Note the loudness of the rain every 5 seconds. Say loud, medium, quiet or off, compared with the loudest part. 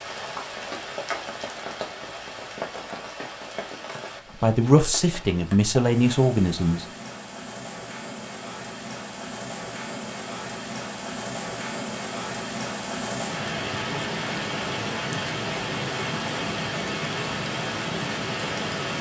medium, medium, loud, loud.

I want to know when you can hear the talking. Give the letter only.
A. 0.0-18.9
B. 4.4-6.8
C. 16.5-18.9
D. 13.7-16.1
B.